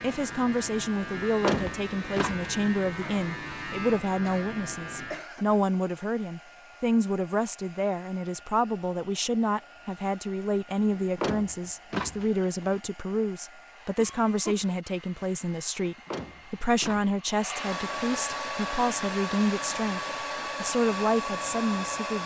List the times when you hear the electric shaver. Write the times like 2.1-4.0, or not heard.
0.0-5.2.